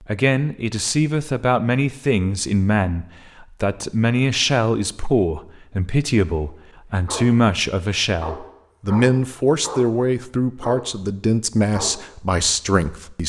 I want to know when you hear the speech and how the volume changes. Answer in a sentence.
The speech can be heard from 0.1 to 13.2 s, at a steady volume.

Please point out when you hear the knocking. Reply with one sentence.
The knocking can't be heard in this clip.